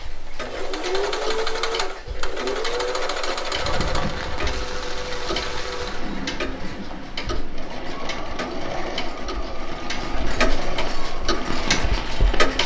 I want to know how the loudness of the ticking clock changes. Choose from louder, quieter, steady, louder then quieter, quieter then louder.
louder.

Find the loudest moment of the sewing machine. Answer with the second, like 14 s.
1 s.